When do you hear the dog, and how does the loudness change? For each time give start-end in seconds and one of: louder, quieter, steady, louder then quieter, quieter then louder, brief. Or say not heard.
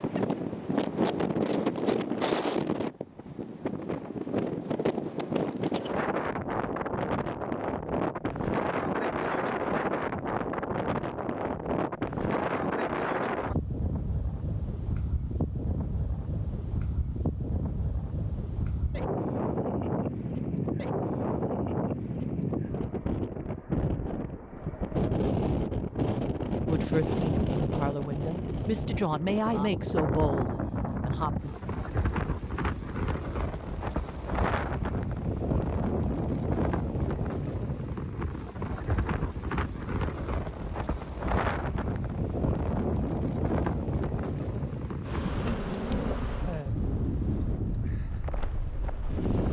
not heard.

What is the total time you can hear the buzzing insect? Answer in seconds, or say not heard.
3 s.